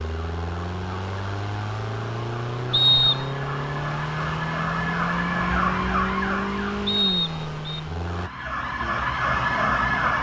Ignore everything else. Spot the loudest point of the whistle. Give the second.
3 s.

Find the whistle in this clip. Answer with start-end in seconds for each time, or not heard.
2.7-3.3, 6.8-7.8.